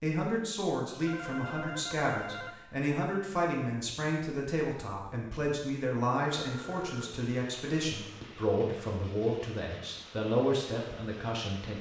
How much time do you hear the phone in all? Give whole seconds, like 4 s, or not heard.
2 s.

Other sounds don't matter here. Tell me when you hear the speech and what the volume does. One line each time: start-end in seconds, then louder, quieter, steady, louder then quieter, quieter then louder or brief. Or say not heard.
0.0-11.7 steady.